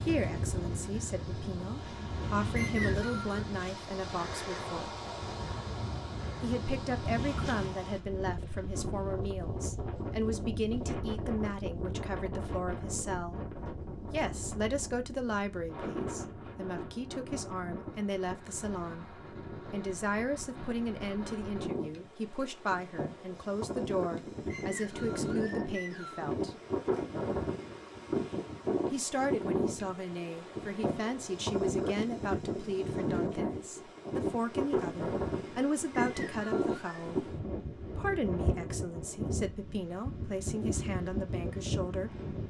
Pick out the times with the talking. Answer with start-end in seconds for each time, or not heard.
0.0-4.9, 6.4-13.4, 14.1-19.1, 19.7-26.6, 28.9-42.1.